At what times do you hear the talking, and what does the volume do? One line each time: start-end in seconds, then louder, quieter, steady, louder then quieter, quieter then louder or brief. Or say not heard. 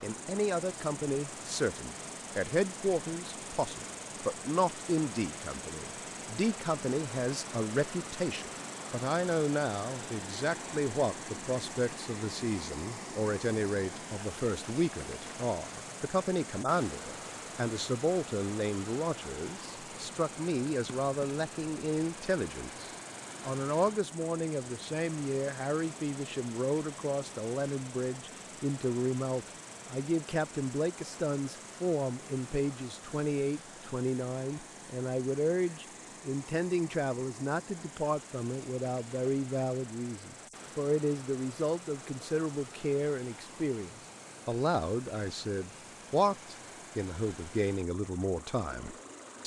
0.0-49.4 steady.